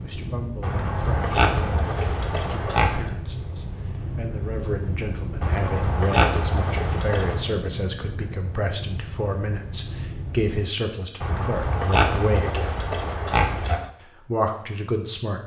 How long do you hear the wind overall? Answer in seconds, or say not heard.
11 s.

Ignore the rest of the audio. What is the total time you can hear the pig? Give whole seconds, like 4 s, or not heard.
7 s.